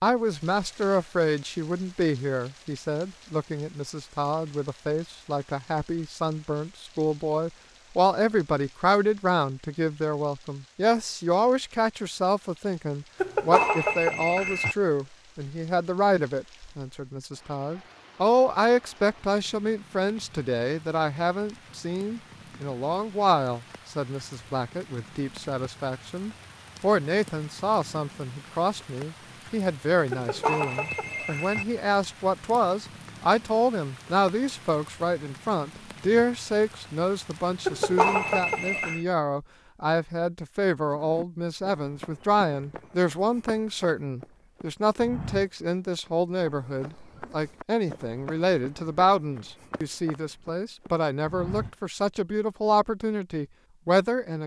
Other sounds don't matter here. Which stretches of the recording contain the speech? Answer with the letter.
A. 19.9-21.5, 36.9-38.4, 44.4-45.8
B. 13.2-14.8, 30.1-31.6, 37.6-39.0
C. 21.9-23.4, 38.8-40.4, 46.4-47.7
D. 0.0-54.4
D.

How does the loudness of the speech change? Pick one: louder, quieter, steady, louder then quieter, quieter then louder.
steady.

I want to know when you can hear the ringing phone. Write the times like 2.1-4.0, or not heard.
13.2-14.8, 30.1-31.6, 37.6-39.0.